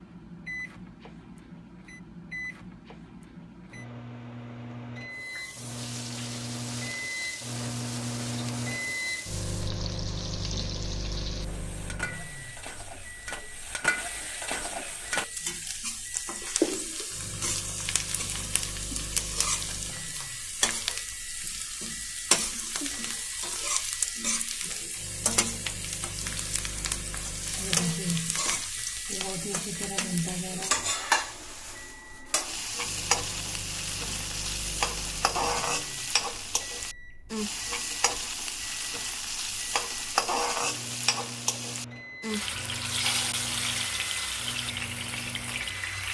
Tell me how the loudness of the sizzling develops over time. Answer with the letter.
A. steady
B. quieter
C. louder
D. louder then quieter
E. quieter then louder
C.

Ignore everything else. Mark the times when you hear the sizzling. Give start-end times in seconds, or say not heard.
5.2-46.1.